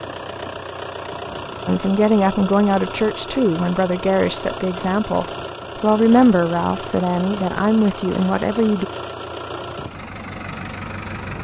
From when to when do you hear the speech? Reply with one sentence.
You can hear the speech from 1.6 to 8.8 s.